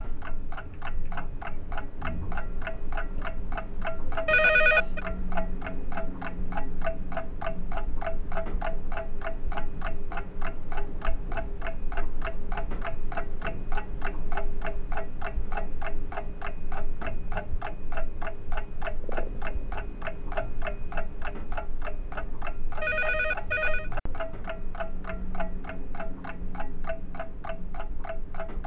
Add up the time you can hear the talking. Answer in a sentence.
You can't hear the talking here.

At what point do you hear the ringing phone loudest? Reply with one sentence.
The volume of the ringing phone peaks at 5 seconds.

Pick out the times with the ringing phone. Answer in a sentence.
The ringing phone can be heard from 4.2 to 5.0 s and from 22.8 to 23.9 s.